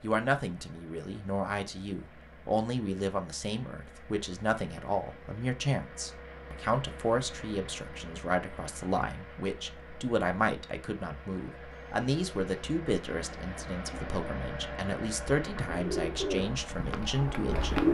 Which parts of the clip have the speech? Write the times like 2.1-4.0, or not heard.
0.0-17.8.